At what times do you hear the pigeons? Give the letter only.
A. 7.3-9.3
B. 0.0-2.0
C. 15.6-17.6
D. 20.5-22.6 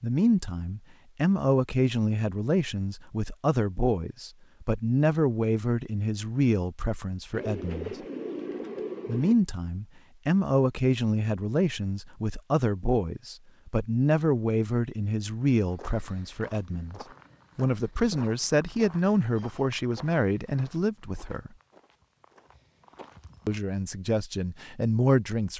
A.